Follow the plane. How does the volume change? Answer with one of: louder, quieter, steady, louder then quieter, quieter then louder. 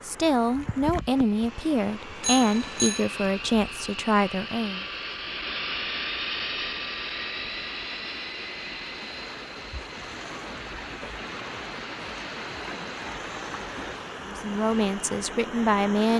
louder then quieter.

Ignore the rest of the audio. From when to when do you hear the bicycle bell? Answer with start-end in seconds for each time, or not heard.
2.2-3.0.